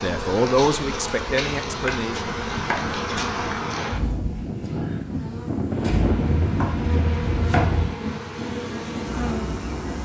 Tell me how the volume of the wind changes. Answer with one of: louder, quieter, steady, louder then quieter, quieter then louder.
louder then quieter.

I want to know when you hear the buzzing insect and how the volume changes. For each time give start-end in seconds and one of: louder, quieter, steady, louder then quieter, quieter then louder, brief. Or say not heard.
0.0-10.0 quieter then louder.